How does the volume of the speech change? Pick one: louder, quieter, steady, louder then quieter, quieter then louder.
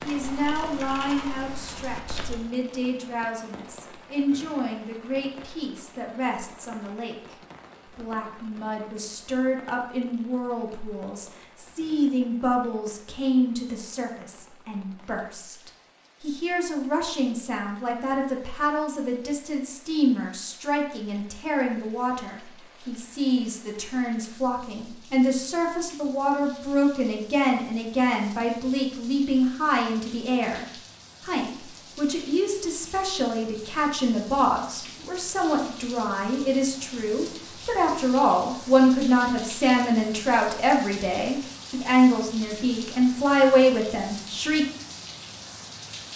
louder.